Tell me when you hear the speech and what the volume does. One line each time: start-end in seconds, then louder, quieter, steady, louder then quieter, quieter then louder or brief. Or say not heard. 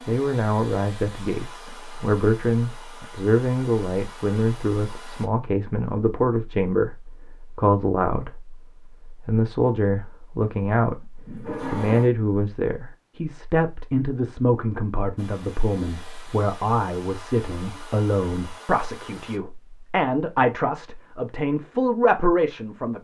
0.1-22.9 steady.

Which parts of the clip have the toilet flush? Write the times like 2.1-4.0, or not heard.
11.2-12.1.